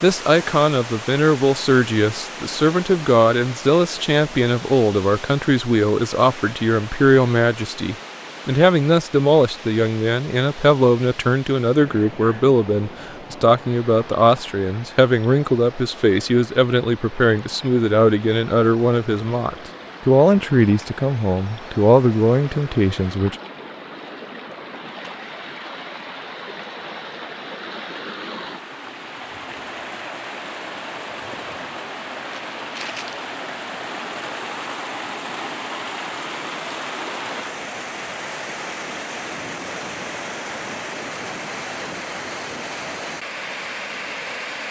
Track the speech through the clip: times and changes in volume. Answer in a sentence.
You can hear the speech from 0.0 to 23.4 s, at a steady volume.